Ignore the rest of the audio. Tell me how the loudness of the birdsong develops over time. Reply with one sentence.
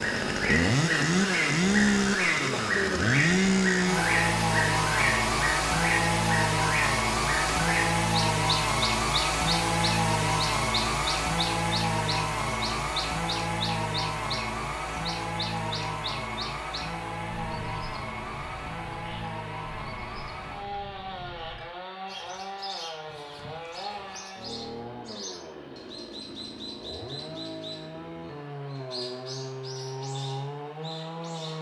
The loudness of the birdsong goes down.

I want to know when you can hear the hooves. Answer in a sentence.
You can't hear the hooves here.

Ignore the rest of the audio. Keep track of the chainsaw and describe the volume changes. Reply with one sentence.
The volume of the chainsaw goes down.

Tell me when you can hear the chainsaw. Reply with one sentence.
You can hear the chainsaw from 0.0 to 31.5 s.